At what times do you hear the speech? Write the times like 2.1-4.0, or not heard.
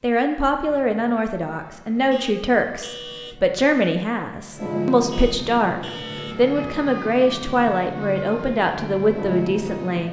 0.0-10.0.